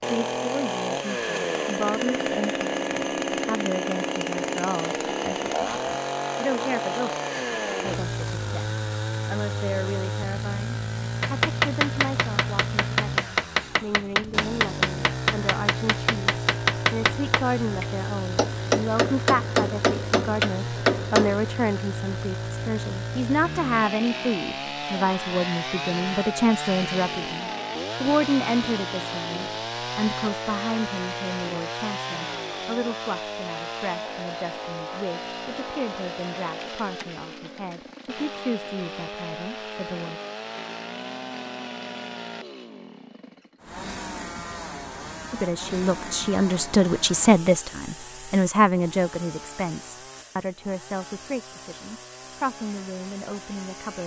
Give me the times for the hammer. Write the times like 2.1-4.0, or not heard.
11.2-21.4.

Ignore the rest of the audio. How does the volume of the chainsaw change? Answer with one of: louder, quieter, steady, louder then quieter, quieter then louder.
quieter.